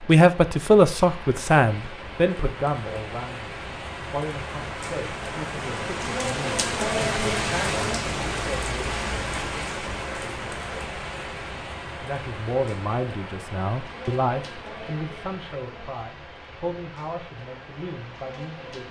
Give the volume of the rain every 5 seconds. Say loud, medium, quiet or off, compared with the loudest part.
medium, loud, medium, quiet.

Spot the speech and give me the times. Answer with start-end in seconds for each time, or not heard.
0.1-8.9, 12.0-18.8.